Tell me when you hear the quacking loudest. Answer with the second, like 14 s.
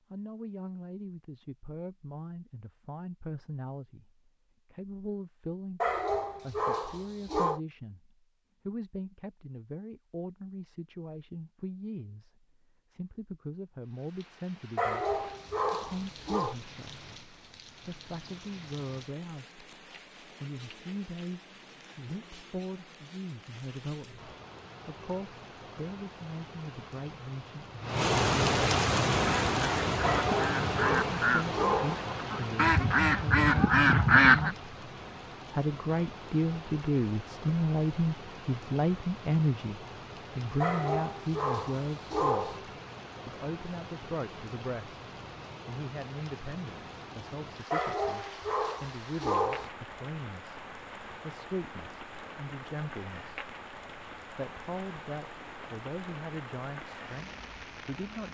34 s.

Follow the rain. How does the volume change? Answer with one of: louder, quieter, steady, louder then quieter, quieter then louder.
louder then quieter.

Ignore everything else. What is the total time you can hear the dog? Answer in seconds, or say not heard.
10 s.